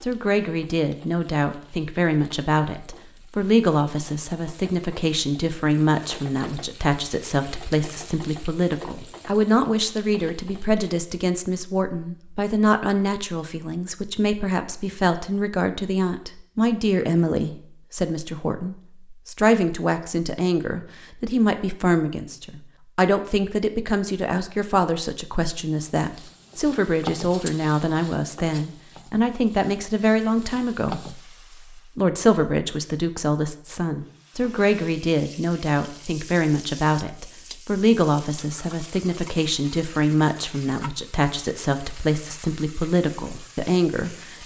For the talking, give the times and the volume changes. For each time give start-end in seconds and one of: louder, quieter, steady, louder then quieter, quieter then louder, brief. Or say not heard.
0.0-44.4 steady.